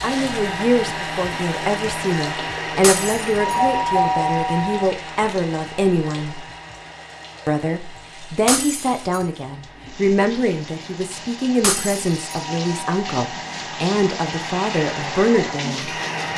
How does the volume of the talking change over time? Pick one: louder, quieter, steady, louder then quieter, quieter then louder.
steady.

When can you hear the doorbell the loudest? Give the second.
4 s.